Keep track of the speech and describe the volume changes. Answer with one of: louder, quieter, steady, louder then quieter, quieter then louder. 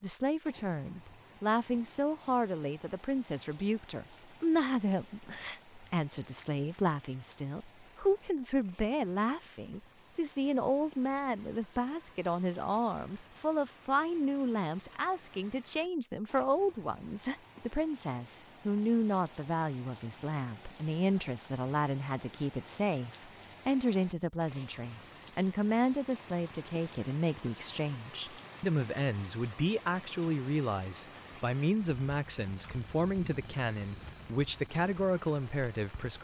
steady.